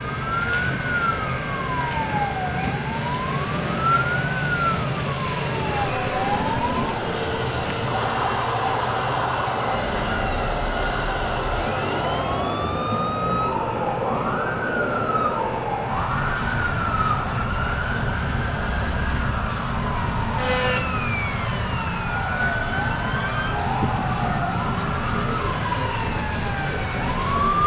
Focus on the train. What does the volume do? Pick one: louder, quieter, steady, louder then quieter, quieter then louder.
steady.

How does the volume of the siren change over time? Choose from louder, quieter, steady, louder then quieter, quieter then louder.
steady.